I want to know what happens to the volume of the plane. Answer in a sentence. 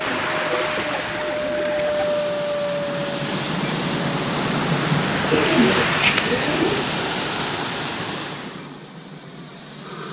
The loudness of the plane goes down.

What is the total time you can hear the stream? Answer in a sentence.
The stream can be heard for 9 seconds in total.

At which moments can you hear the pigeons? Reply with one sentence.
You can hear the pigeons from 0.1 to 2.0 s and from 5.3 to 6.8 s.